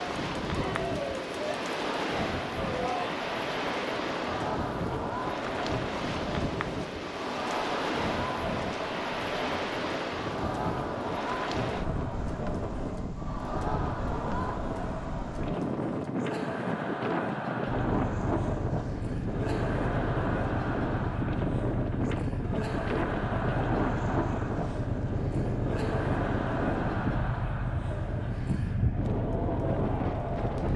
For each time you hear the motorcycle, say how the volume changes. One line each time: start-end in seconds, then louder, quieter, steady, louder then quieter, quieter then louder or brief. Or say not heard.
17.6-30.7 steady.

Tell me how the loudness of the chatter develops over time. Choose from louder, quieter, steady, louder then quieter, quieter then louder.
steady.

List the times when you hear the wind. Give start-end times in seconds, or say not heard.
0.0-30.7.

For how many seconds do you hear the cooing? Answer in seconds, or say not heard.
not heard.